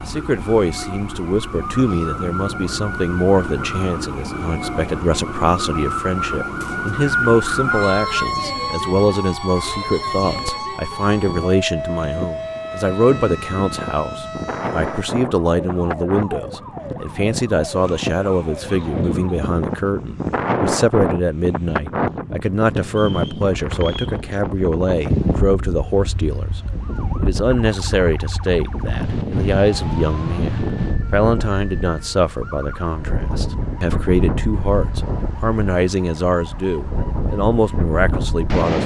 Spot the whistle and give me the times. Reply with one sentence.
You can hear the whistle from 6.6 to 8.2 s and from 22.9 to 24.2 s.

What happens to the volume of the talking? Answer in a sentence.
The volume of the talking stays about the same.